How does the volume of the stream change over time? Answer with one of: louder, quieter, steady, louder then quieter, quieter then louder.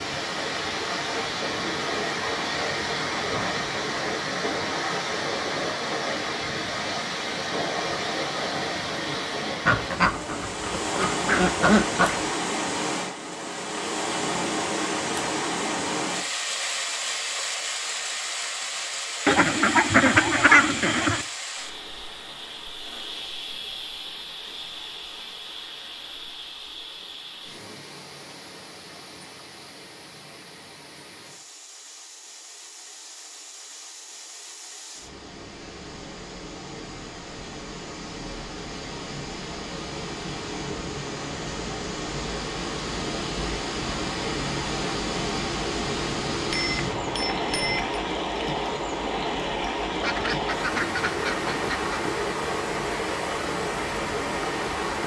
quieter then louder.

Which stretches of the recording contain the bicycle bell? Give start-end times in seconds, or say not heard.
46.5-48.0.